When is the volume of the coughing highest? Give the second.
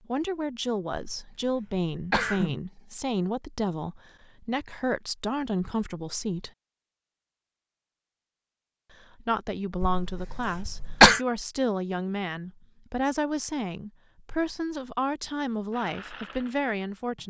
11 s.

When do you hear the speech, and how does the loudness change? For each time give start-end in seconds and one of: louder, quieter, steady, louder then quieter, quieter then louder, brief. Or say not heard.
0.1-6.5 steady
8.9-17.2 steady.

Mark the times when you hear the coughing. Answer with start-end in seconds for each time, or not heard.
0.9-2.6, 9.8-11.2.